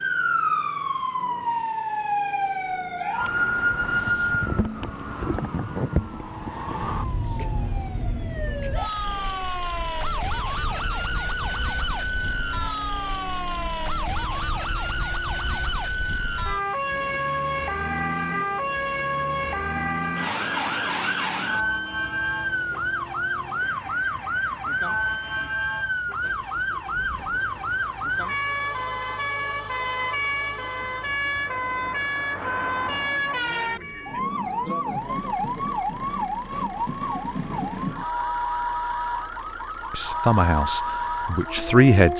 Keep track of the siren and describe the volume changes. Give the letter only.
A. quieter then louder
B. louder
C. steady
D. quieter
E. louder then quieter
C.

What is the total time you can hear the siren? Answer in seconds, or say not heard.
42 s.